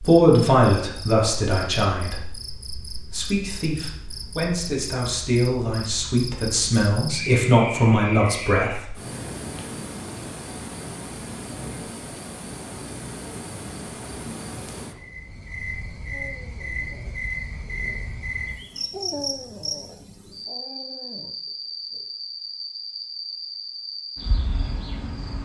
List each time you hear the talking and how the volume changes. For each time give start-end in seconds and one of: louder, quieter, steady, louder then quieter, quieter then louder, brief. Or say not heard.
0.0-8.9 quieter then louder.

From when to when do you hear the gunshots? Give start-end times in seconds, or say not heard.
not heard.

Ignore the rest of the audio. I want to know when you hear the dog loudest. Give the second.
19 s.